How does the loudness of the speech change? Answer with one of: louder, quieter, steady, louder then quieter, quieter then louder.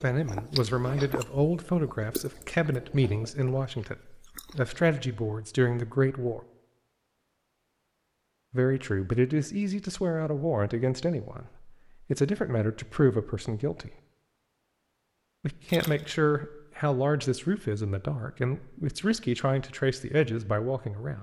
steady.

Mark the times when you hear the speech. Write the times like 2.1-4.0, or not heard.
0.0-6.4, 8.5-13.9, 15.4-21.1.